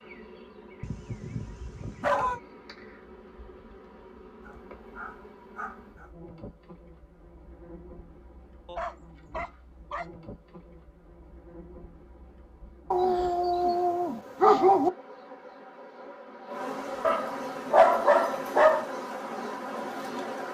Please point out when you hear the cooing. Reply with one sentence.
You can't hear the cooing here.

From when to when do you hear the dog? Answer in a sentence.
The dog can be heard from 0.8 to 2.4 s, from 4.5 to 6.1 s, from 8.7 to 10.1 s, from 12.9 to 14.9 s and from 17.0 to 18.9 s.